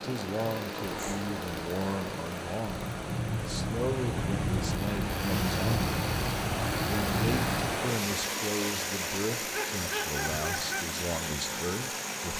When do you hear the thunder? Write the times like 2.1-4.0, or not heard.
2.6-7.7.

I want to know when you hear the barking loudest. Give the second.
10 s.